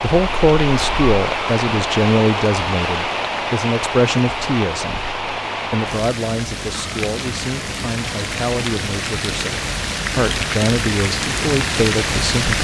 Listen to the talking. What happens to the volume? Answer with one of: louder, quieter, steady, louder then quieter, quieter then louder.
quieter then louder.